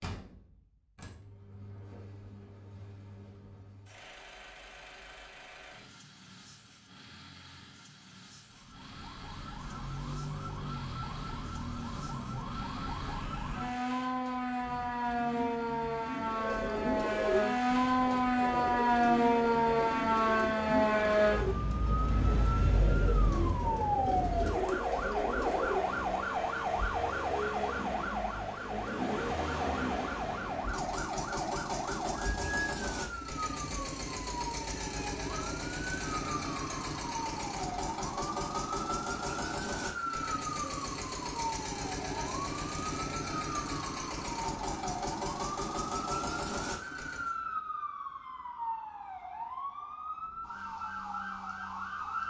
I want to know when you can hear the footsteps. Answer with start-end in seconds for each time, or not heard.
not heard.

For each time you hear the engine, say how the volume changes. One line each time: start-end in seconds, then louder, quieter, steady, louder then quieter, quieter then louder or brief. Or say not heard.
0.0-47.4 louder.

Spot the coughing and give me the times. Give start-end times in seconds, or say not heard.
not heard.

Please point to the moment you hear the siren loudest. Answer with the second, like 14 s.
19 s.